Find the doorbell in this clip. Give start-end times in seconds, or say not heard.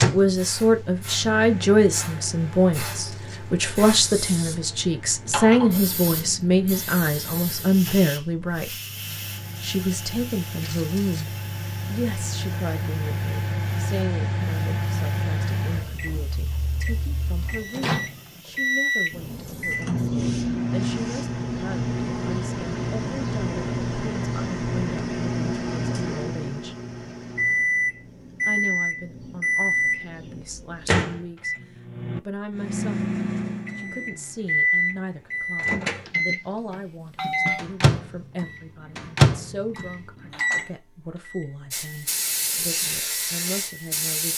36.7-37.6.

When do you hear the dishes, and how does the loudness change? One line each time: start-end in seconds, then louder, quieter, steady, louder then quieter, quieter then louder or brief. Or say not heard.
not heard.